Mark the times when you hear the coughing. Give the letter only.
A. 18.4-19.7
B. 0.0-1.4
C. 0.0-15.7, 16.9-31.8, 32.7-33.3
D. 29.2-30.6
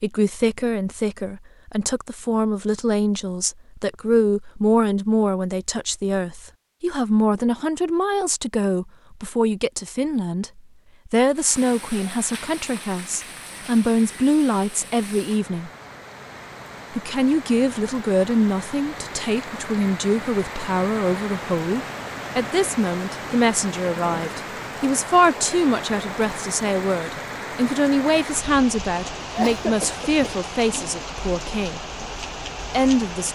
D.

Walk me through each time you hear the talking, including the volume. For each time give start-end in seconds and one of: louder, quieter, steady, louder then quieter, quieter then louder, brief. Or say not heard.
0.0-15.7 steady
16.9-31.8 steady
32.7-33.3 brief.